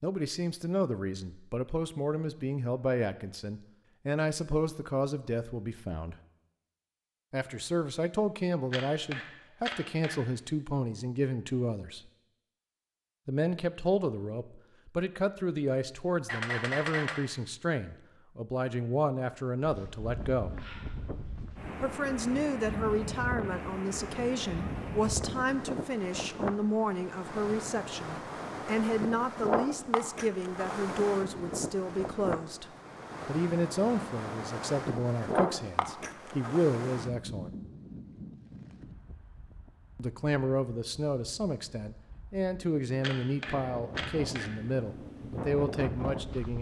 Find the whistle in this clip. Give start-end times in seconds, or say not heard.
not heard.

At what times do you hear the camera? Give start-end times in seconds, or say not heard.
8.7-10.2, 16.2-17.2, 43.0-44.5.